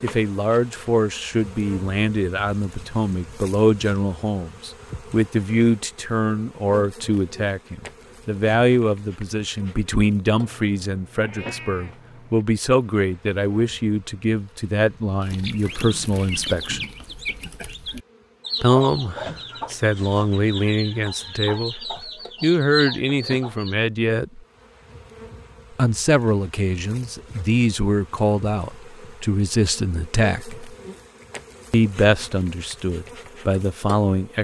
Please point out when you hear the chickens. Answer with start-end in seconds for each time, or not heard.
15.2-23.8.